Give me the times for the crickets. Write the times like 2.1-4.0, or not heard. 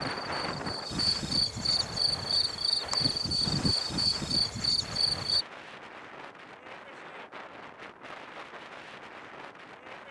0.0-5.5.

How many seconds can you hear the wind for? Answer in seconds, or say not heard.
10 s.